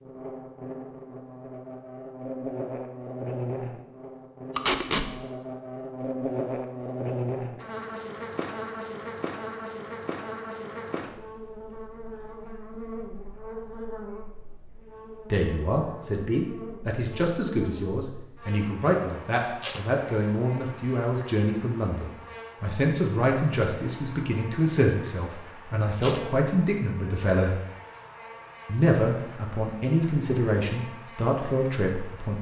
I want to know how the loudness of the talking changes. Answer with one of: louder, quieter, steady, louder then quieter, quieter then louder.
steady.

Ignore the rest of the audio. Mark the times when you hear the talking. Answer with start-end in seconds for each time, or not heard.
15.3-27.6, 28.6-32.3.